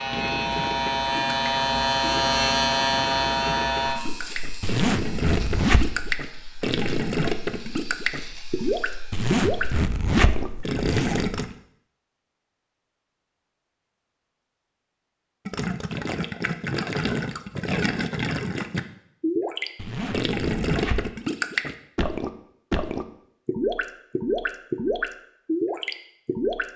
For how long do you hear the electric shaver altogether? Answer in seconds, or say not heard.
10 s.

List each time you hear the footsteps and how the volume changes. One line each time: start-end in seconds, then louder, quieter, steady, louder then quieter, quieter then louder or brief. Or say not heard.
not heard.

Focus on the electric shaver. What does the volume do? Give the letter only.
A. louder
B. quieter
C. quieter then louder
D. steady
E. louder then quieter
B.